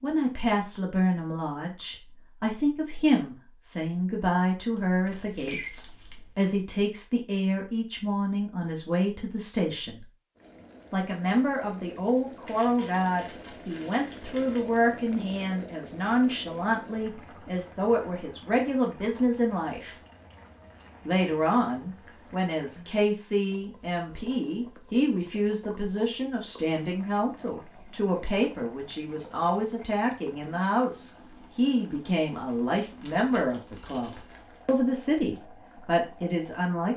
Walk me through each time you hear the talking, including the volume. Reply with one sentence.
You can hear the talking from 0.0 to 10.1 s, at a steady volume; from 10.9 to 19.9 s, at a steady volume; and from 21.1 to 36.9 s, at a steady volume.